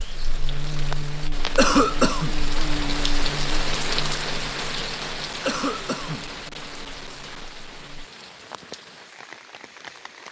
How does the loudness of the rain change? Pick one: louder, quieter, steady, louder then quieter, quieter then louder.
louder then quieter.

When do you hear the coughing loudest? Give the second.
2 s.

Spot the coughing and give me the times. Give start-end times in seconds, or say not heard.
1.6-2.4, 5.5-6.2.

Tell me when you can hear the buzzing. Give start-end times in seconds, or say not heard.
0.0-8.1.